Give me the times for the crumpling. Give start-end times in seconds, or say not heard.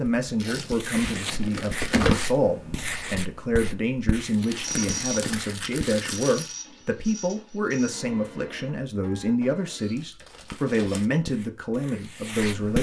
0.4-2.4, 4.5-6.5, 9.9-11.1.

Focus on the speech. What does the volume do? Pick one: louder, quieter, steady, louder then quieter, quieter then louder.
steady.